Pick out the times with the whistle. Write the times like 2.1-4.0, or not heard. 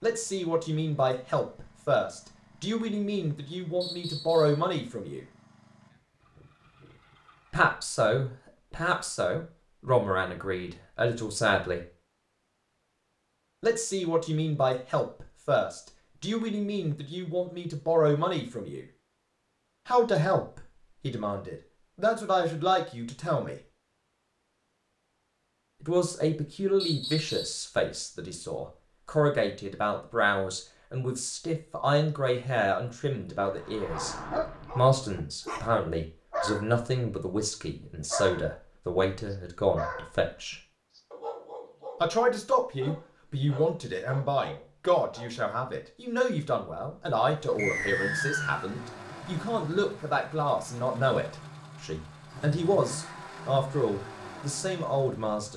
3.8-4.6, 26.8-27.6, 47.5-48.7.